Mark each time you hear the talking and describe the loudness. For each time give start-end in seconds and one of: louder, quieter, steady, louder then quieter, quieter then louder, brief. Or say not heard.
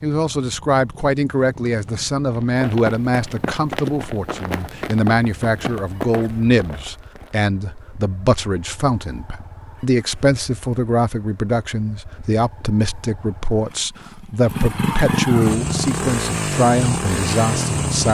0.0-18.1 steady.